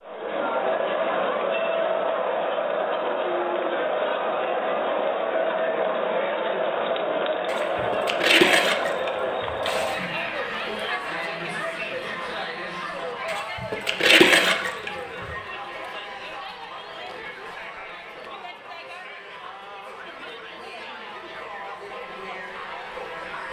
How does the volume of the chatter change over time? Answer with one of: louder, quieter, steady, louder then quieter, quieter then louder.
quieter.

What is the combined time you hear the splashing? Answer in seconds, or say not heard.
5 s.